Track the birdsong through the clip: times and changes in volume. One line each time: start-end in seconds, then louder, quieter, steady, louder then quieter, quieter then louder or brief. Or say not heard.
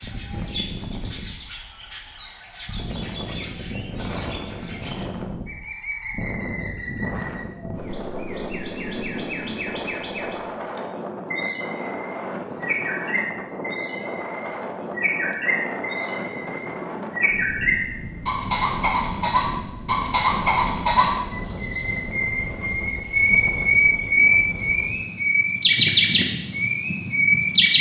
0.0-27.7 louder.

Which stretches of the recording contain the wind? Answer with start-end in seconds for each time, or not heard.
0.0-27.7.